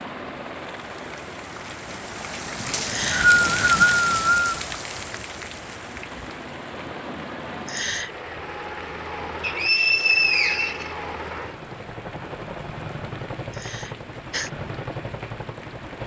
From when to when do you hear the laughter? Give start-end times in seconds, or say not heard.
2.9-3.3, 7.7-8.2, 13.5-14.5.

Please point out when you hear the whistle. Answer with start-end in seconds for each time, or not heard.
2.7-4.5, 9.4-10.9.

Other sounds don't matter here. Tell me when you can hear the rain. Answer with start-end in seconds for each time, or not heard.
0.0-16.0.